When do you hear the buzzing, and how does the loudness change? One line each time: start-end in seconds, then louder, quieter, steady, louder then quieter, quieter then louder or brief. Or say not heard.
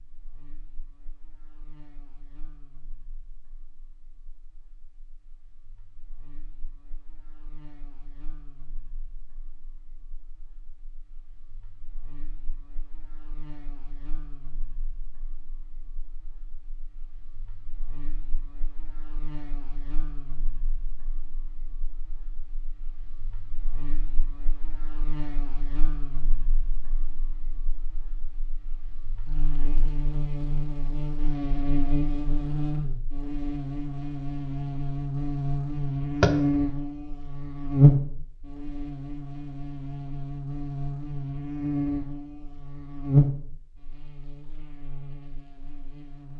0.0-46.3 louder.